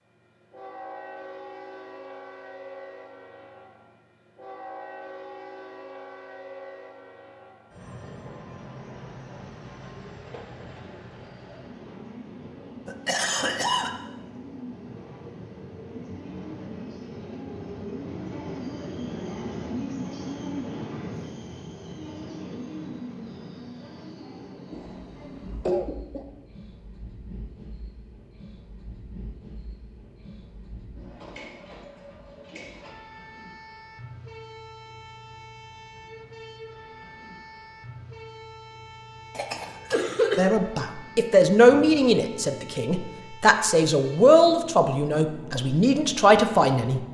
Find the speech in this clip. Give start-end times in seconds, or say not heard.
40.4-47.0.